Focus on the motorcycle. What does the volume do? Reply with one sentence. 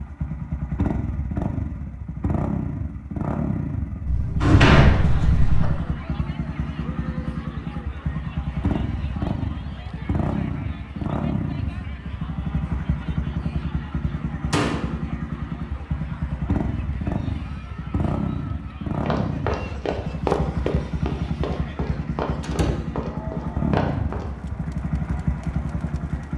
The loudness of the motorcycle stays about the same.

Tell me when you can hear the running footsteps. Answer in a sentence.
The running footsteps can be heard from 19.0 to 24.3 s.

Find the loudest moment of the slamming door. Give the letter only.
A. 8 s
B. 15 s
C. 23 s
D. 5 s
D.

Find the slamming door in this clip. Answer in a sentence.
You can hear the slamming door from 4.0 to 5.7 s, from 14.5 to 14.9 s and from 22.4 to 22.8 s.